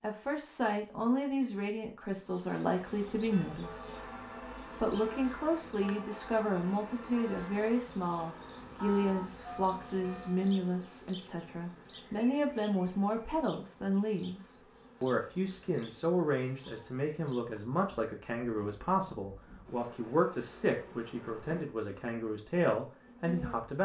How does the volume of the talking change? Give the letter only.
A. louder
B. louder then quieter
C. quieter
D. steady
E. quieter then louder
D.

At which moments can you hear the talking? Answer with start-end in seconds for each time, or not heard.
0.0-4.0, 4.8-23.8.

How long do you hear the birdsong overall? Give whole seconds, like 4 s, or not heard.
not heard.